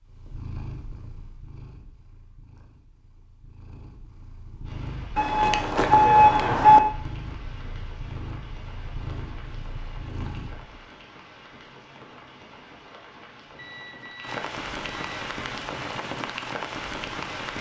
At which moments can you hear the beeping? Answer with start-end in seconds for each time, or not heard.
5.2-6.8, 13.6-15.2.